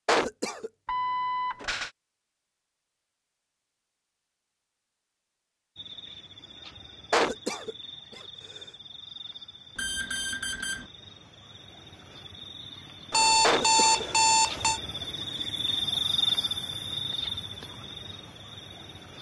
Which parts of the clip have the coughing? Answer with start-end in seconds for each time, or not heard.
0.1-0.7, 7.1-8.2, 13.4-14.1.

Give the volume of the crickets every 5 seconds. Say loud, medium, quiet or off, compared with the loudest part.
off, quiet, medium, loud.